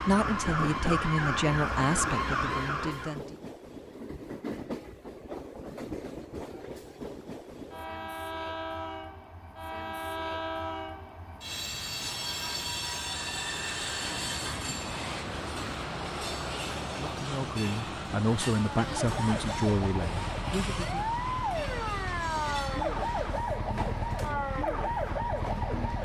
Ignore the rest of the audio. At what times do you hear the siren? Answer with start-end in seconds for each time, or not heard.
0.0-3.2, 18.4-26.0.